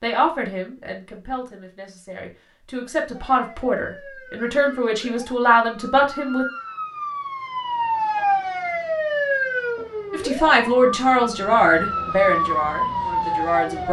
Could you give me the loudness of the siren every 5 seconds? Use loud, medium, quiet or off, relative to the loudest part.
quiet, loud, loud.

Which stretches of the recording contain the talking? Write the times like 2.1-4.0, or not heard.
0.0-6.5, 10.1-13.8.